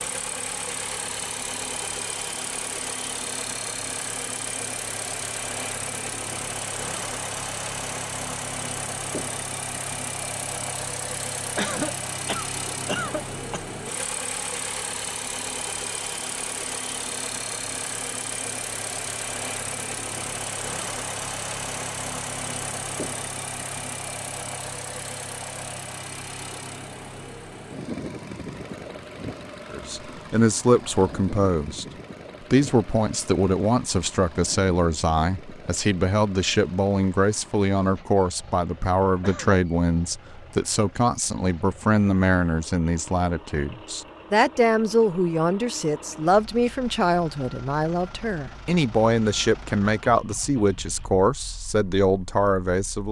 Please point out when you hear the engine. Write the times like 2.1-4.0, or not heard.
0.0-53.0.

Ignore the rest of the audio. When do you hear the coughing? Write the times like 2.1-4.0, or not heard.
11.6-13.7, 39.2-39.6.